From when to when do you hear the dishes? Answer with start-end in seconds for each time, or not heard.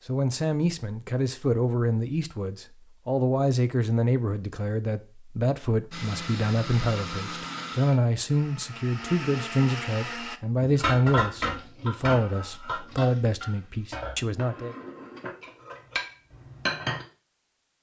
10.6-17.1.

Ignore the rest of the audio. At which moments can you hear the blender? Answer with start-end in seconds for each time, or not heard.
5.9-10.4.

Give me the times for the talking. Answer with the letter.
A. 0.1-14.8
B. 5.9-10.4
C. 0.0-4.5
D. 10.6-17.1
A.